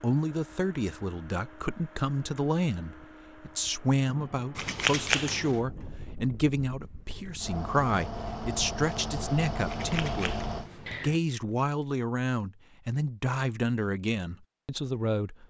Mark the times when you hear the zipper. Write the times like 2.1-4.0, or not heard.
not heard.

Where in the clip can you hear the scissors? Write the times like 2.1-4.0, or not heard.
4.5-5.6, 9.7-11.2.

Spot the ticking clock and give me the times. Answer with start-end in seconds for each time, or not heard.
not heard.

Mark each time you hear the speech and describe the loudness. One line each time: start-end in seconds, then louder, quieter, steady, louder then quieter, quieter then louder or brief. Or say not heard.
0.0-15.4 steady.